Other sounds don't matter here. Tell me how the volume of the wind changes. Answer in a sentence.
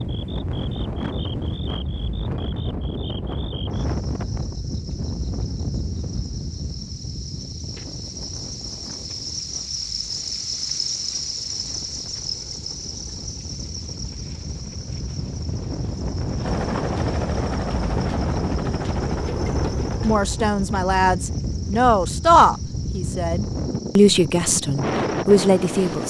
The volume of the wind goes down, then up.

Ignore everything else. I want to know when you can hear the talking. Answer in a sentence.
You can hear the talking from 20.0 to 26.0 s.